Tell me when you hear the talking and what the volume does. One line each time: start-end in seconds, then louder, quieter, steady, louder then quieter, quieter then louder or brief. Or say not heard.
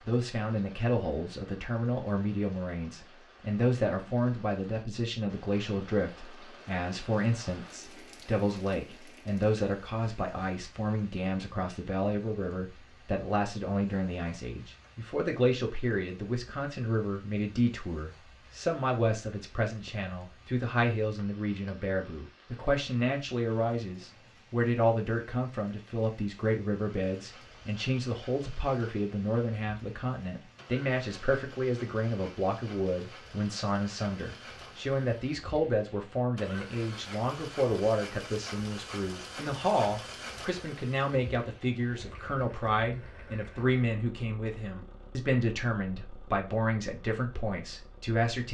0.1-48.5 steady.